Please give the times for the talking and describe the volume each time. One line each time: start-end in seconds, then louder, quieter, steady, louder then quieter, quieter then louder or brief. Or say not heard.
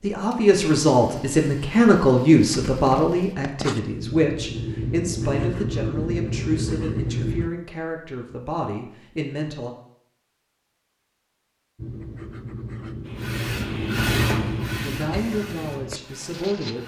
0.0-9.7 quieter
14.8-16.8 brief.